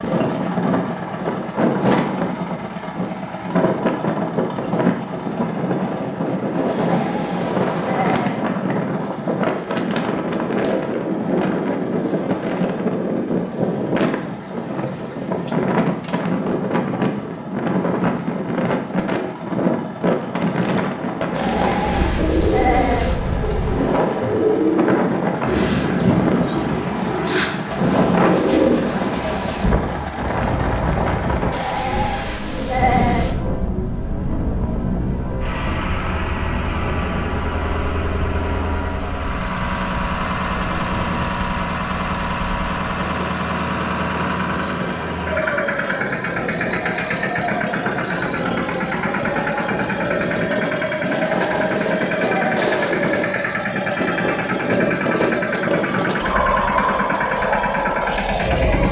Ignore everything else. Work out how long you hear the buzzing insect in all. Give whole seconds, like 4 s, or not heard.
not heard.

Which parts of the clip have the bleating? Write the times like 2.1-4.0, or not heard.
6.7-8.4, 21.3-23.1, 31.5-33.4, 51.0-52.6.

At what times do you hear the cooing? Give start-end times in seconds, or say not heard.
21.6-29.7.